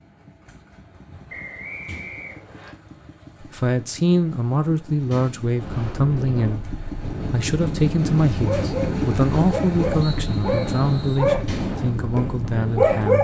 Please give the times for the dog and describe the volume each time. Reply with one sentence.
The dog can be heard from 8.4 to 13.1 s, getting louder then quieter.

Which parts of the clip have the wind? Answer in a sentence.
The wind can be heard from 5.5 to 13.1 s.